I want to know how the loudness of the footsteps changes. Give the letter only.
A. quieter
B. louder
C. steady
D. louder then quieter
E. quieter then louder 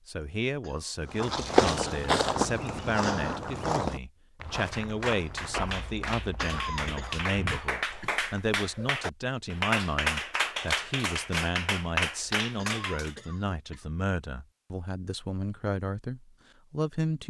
A.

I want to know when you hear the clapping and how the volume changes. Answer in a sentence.
The clapping can be heard from 4.6 to 13.2 s, getting louder.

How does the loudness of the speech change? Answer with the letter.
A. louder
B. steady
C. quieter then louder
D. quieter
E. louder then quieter
B.